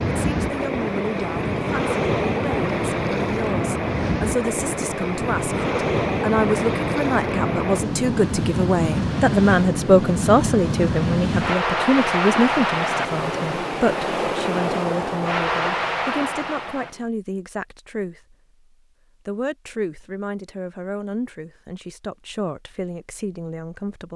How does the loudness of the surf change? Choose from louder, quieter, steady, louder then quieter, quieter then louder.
steady.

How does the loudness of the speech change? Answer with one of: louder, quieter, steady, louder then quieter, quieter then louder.
louder then quieter.